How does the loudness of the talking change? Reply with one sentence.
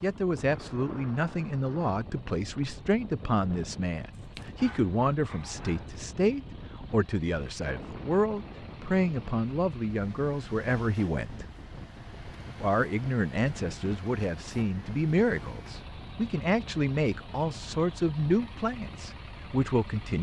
The loudness of the talking stays about the same.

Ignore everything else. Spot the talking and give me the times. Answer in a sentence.
You can hear the talking from 0.0 to 11.4 s and from 12.6 to 20.1 s.